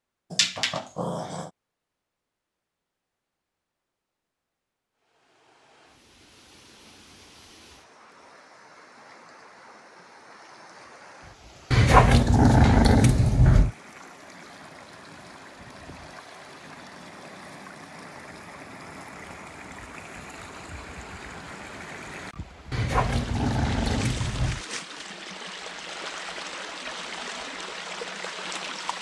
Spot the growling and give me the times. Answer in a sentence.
The growling can be heard from 0.3 to 1.5 s, from 11.7 to 13.7 s and from 22.7 to 24.6 s.